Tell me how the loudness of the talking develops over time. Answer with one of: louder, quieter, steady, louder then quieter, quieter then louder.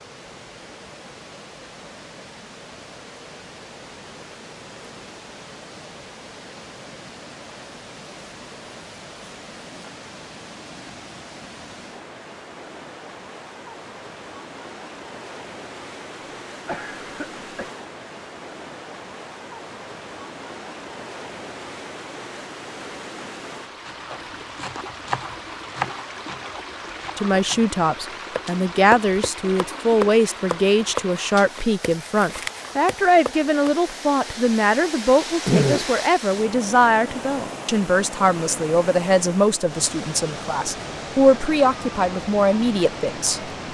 steady.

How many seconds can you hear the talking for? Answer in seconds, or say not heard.
16 s.